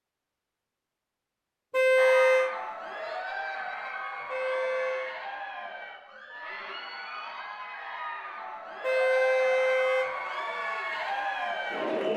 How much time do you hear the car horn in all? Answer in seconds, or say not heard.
3 s.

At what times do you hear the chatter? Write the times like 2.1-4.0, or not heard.
1.9-12.1.